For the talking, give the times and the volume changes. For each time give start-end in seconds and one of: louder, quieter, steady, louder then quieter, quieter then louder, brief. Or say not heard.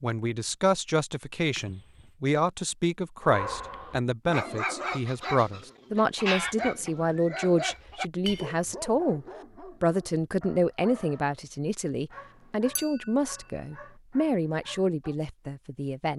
0.0-16.1 steady.